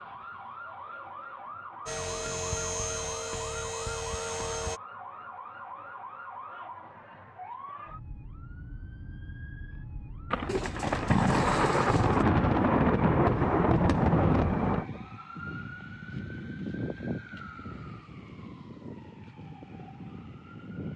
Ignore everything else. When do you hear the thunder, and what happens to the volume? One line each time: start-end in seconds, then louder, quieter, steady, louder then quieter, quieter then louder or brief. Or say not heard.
10.3-14.8 steady.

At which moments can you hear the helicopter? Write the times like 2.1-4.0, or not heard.
1.9-4.8.